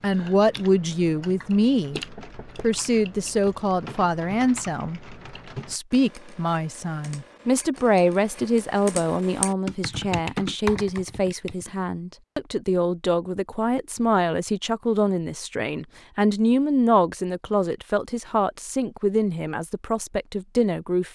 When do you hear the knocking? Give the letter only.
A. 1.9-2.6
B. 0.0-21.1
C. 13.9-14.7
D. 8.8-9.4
A.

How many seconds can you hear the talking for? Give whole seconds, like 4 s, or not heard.
21 s.